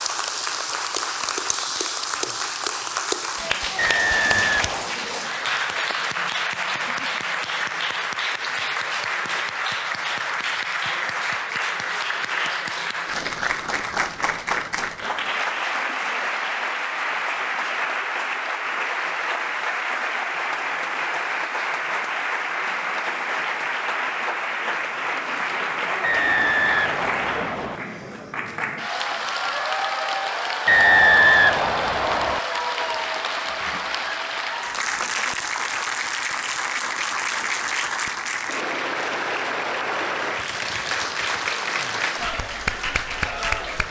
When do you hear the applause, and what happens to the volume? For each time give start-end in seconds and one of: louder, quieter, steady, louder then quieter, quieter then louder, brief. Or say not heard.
0.0-43.8 steady.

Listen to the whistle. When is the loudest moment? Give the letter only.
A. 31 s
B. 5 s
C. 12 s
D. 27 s
A.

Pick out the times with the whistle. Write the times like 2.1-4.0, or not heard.
3.8-5.0, 26.0-27.8, 30.6-32.4.